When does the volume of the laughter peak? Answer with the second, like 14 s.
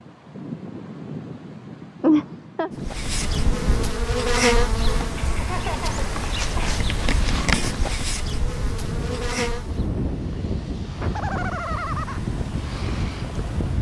2 s.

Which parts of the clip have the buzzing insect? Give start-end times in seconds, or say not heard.
2.8-9.9.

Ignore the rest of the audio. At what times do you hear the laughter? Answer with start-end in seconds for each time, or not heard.
2.0-2.7, 5.2-6.8, 11.0-12.2.